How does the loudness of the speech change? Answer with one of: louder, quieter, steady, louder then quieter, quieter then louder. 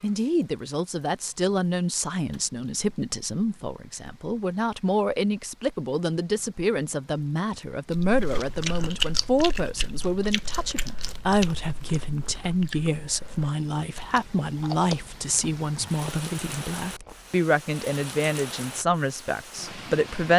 steady.